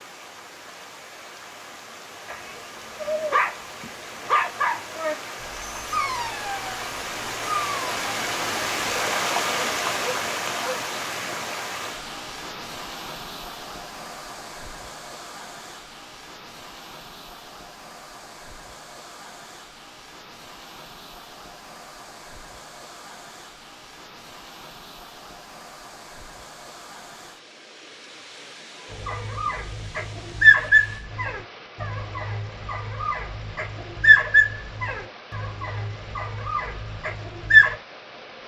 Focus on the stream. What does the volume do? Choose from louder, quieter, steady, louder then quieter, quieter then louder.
louder then quieter.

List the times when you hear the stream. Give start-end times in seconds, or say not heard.
0.0-38.4.